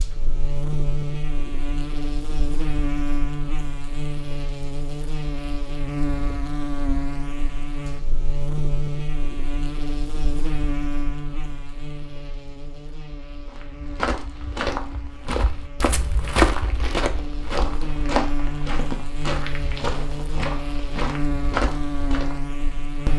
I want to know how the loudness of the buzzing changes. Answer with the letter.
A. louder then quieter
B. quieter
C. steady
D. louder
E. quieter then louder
E.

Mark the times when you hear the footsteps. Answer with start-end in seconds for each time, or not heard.
13.4-22.4.